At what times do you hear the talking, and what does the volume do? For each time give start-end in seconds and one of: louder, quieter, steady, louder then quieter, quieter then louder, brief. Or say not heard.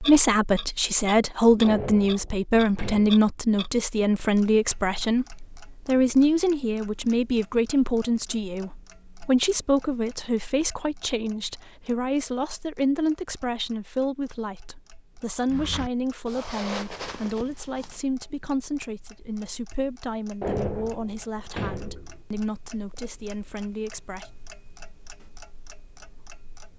0.0-24.3 quieter.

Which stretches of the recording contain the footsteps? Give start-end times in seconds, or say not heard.
15.4-18.1.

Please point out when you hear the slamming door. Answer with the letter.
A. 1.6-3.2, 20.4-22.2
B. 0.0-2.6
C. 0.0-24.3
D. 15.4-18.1
A.